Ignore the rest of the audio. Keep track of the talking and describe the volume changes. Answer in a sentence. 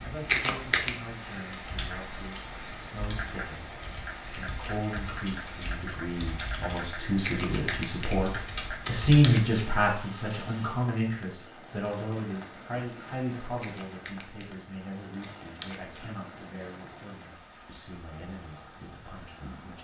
The loudness of the talking goes up, then down.